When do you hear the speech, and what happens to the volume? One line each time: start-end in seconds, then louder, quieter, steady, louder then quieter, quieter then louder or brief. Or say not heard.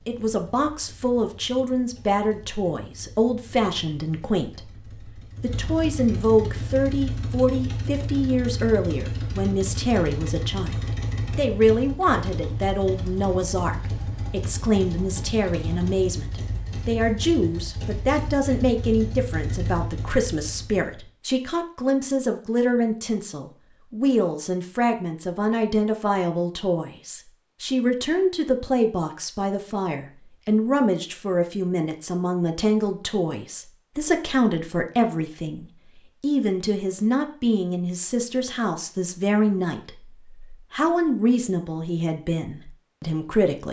0.1-43.6 steady.